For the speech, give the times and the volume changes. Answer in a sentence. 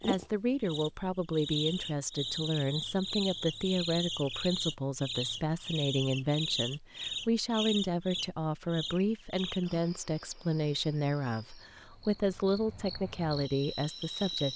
The speech can be heard from 0.1 to 14.5 s, at a steady volume.